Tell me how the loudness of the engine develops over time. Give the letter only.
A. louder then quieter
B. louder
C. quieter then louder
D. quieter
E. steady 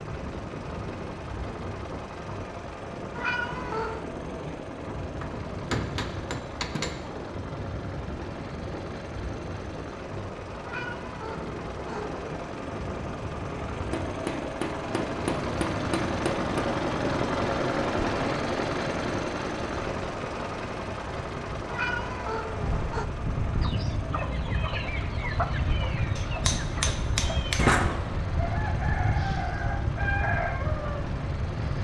A.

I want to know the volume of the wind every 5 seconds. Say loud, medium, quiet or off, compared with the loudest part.
medium, medium, medium, medium, loud, loud, loud.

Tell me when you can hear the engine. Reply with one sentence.
You can hear the engine from 0.0 to 31.7 s.